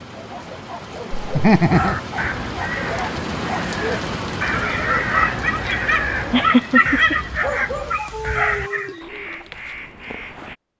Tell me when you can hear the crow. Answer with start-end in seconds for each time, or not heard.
1.7-10.6.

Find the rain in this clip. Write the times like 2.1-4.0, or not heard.
0.0-9.1.